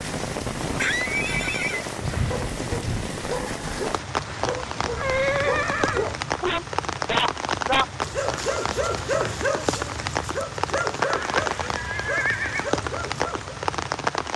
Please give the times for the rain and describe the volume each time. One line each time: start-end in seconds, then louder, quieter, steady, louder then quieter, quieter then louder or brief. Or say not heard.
0.0-14.3 steady.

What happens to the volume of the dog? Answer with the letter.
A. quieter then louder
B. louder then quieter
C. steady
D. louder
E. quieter
B.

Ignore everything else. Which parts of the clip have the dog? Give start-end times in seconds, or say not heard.
1.7-13.6.